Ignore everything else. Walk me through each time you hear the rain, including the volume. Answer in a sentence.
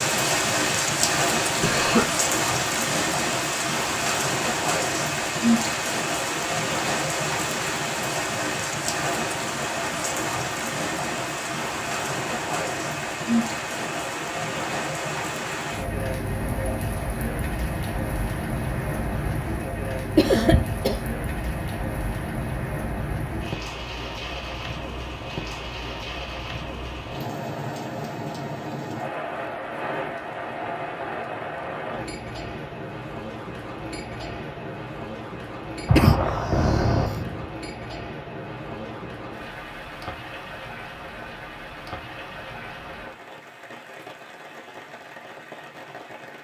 You can hear the rain from 0.0 to 46.4 s, getting quieter.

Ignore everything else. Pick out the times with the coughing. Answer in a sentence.
The coughing can be heard from 1.6 to 2.1 s, from 20.1 to 21.0 s and from 35.9 to 37.5 s.